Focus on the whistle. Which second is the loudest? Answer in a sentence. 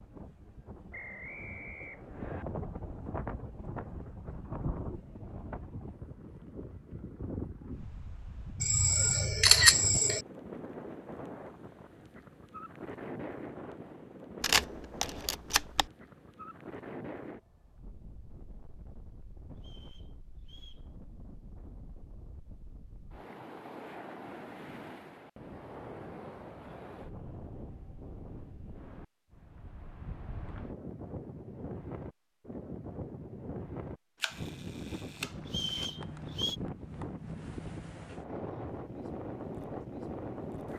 The loudest moment of the whistle is at 36 seconds.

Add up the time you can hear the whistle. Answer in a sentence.
You can hear the whistle for 4 seconds altogether.